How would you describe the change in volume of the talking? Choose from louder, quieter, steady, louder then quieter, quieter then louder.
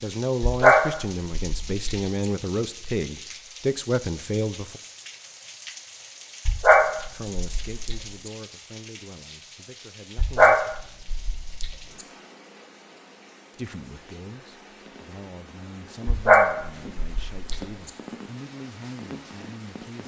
quieter.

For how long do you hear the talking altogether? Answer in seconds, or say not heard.
15 s.